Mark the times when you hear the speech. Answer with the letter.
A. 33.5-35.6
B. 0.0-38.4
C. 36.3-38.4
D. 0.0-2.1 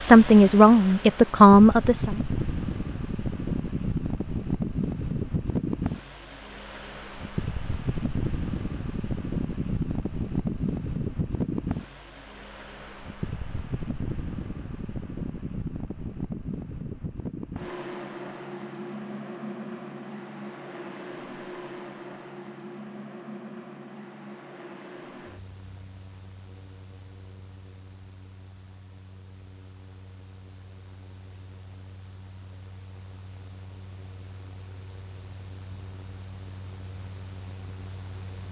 D.